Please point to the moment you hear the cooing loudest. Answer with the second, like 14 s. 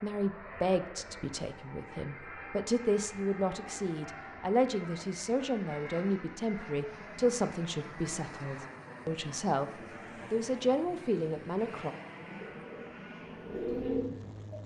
14 s.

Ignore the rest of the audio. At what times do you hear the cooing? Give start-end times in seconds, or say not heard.
12.4-14.6.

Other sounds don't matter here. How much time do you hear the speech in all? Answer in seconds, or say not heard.
11 s.